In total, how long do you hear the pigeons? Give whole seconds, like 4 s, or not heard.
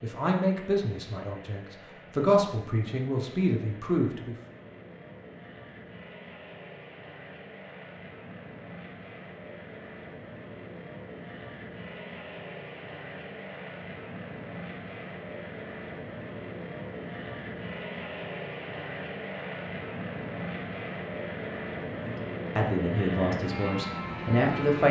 not heard.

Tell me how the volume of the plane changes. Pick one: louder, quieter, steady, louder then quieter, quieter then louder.
louder.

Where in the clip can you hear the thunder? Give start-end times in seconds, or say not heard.
not heard.